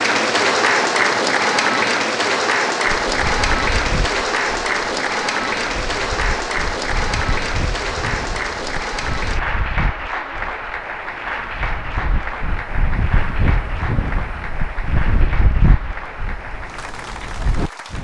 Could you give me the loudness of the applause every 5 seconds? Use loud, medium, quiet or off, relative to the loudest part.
loud, medium, medium, quiet.